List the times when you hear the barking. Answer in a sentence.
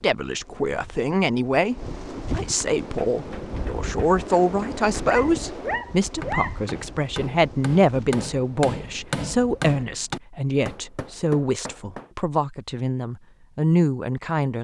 You can hear the barking from 5.0 to 6.5 s.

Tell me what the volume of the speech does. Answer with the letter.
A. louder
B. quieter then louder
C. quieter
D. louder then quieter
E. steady
E.